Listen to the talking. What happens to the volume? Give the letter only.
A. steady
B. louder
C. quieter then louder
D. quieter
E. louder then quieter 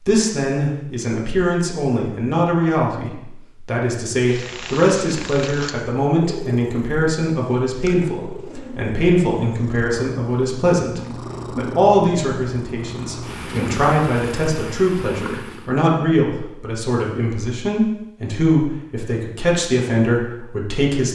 A.